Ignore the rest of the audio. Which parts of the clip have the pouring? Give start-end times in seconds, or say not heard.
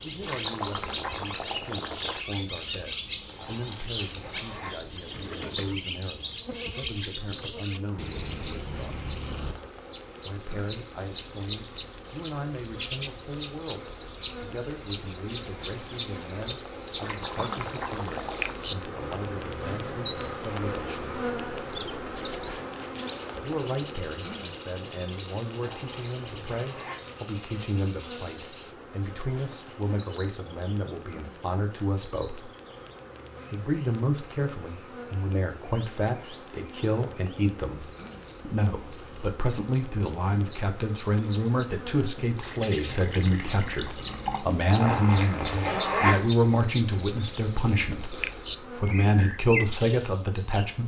0.2-2.2, 17.0-18.6, 42.1-44.5.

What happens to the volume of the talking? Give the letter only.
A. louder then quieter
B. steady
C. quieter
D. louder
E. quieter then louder
D.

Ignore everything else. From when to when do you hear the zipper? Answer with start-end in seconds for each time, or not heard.
3.2-4.8, 25.6-27.0, 44.7-46.2.